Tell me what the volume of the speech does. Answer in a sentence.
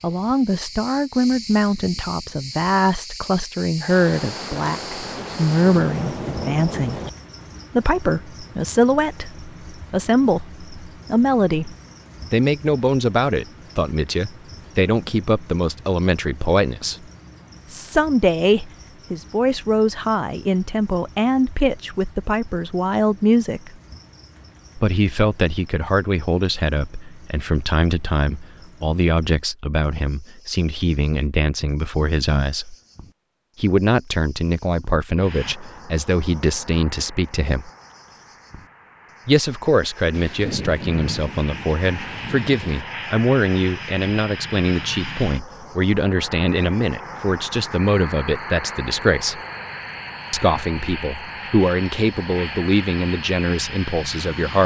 The loudness of the speech stays about the same.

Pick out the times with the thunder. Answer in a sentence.
The thunder can be heard from 3.9 to 7.1 s and from 40.1 to 42.9 s.